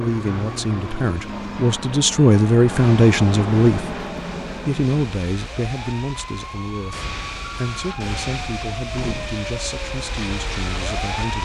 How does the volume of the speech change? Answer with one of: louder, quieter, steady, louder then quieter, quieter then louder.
louder then quieter.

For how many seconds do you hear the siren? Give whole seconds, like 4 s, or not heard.
11 s.